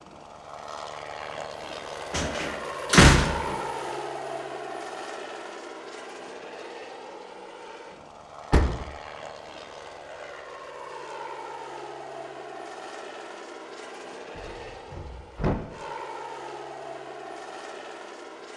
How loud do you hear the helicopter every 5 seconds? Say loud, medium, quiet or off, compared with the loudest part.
loud, medium, medium, medium.